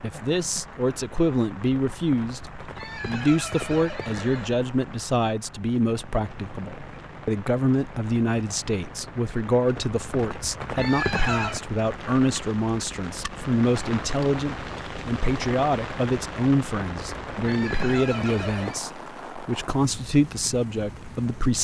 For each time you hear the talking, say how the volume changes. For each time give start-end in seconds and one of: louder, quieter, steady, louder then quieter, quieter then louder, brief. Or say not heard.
0.0-21.5 steady.